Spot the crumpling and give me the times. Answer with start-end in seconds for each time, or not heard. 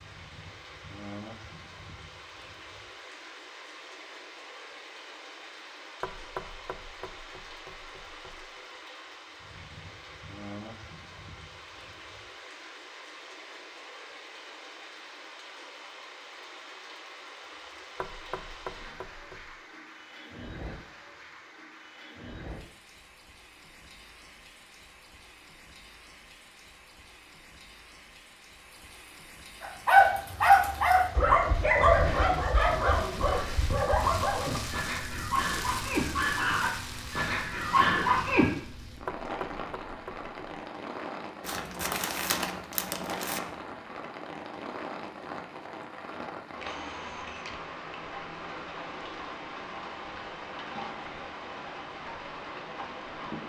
41.4-43.4.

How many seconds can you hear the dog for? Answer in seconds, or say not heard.
9 s.